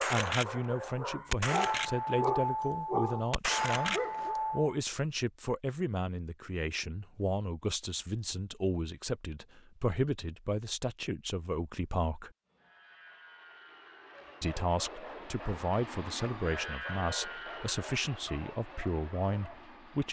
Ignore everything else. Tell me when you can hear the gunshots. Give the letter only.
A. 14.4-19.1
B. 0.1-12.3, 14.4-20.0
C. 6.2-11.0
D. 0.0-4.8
D.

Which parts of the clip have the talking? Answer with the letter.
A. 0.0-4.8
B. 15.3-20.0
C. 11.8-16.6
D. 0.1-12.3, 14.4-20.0
D.